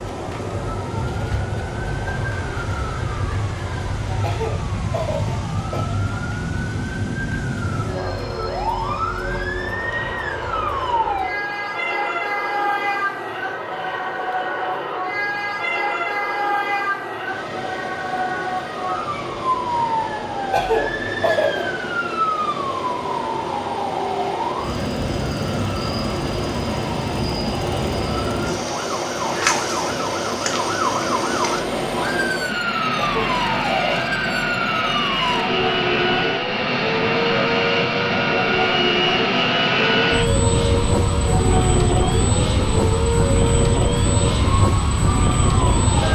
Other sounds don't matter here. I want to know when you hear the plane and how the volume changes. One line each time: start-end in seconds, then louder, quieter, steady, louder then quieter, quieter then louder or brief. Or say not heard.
7.8-46.1 louder.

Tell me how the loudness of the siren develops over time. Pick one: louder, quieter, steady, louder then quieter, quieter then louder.
steady.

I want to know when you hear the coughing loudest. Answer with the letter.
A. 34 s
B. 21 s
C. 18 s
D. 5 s
B.